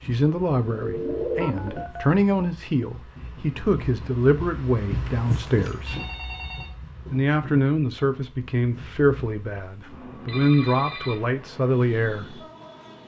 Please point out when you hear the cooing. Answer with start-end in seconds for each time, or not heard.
0.7-1.9.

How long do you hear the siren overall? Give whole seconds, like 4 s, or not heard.
not heard.